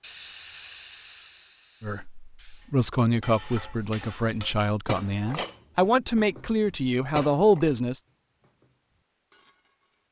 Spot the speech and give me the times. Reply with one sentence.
You can hear the speech from 1.8 to 8.0 s.